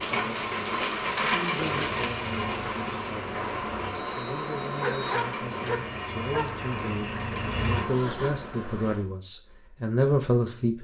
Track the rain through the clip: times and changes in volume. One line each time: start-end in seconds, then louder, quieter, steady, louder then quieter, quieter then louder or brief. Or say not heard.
0.0-9.1 quieter.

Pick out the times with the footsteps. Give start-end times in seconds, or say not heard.
not heard.